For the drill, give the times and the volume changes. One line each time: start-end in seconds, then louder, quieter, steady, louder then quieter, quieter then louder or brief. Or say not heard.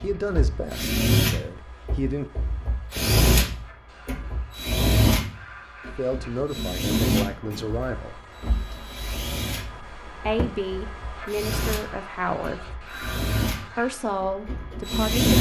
0.0-15.3 quieter.